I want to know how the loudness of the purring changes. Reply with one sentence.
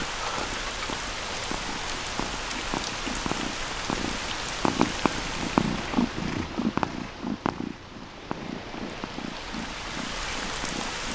The loudness of the purring goes up, then down.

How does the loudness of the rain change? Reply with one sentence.
The loudness of the rain goes down, then up.